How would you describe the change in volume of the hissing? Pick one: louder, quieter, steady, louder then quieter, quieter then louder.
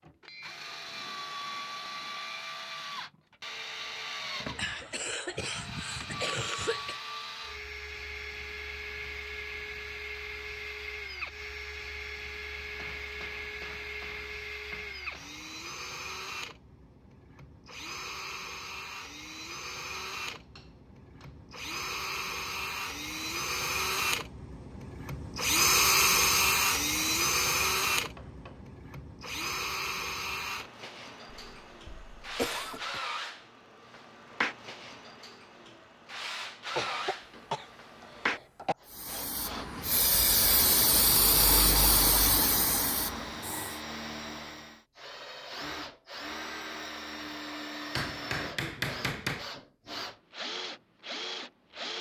louder then quieter.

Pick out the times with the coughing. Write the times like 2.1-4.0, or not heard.
4.5-7.0, 31.3-33.0, 36.8-38.8.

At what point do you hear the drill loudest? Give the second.
26 s.